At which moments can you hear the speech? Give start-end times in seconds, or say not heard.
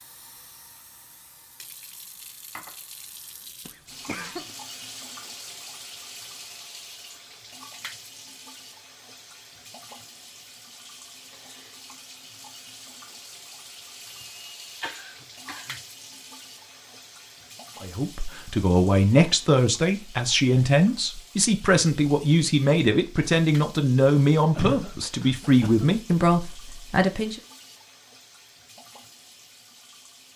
17.8-27.4.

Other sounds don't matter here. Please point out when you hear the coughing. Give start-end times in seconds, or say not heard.
3.6-4.5, 14.1-15.8, 24.6-25.9.